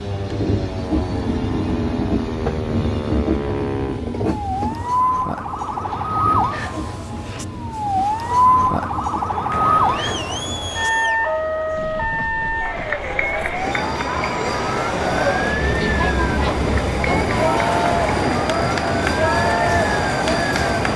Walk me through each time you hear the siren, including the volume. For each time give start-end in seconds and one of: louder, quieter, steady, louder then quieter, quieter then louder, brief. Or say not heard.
0.0-20.9 louder then quieter.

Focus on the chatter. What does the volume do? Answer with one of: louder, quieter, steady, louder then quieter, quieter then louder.
louder.